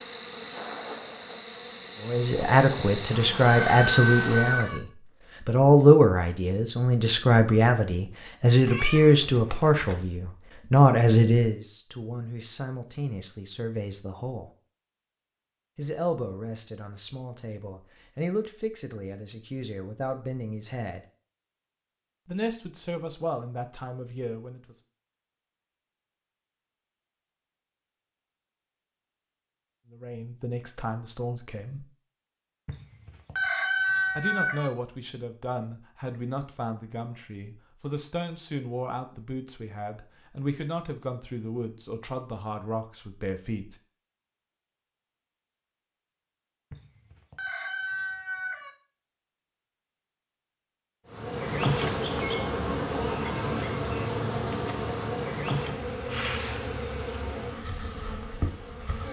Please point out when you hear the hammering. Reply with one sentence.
The hammering can't be heard in this clip.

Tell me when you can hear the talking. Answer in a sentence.
The talking can be heard from 2.0 to 4.8 s, from 5.5 to 14.5 s, from 15.8 to 21.1 s, from 22.2 to 24.8 s, from 29.9 to 31.9 s and from 34.1 to 43.8 s.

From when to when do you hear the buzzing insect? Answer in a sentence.
You can hear the buzzing insect from 0.0 to 4.8 s and from 51.1 to 59.0 s.